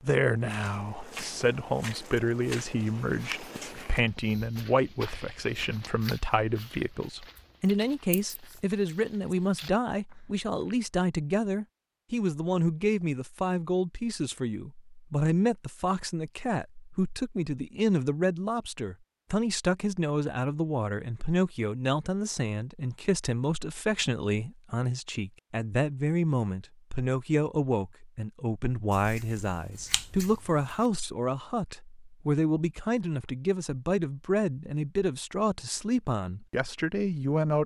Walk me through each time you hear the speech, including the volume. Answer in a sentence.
You can hear the speech from 0.0 to 37.6 s, at a steady volume.